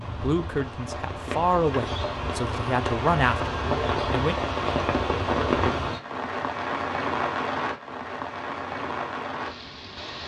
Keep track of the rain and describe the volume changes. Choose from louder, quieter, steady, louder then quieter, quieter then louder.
louder then quieter.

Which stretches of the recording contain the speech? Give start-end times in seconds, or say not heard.
0.0-4.3.